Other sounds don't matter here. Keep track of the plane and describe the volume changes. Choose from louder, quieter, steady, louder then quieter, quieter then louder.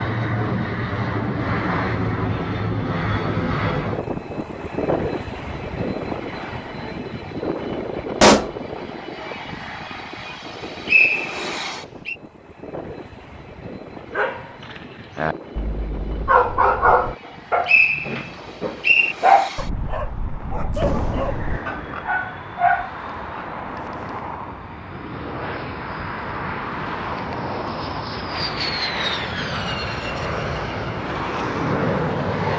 quieter then louder.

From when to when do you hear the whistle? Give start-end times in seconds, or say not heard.
10.4-12.2, 17.2-19.1.